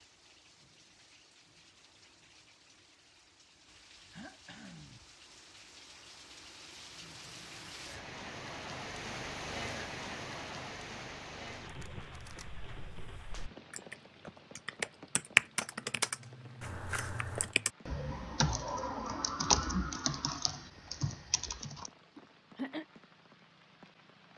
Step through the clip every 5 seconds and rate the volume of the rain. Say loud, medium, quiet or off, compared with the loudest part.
quiet, loud, loud, quiet, quiet.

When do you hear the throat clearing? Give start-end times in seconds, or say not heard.
4.1-5.0, 22.1-22.9.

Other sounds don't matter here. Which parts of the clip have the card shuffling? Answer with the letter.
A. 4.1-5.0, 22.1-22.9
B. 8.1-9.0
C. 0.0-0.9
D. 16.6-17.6
D.